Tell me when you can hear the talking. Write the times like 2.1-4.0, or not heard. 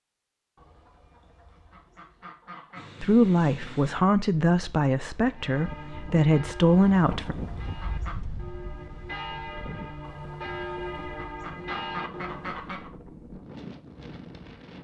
3.0-7.3.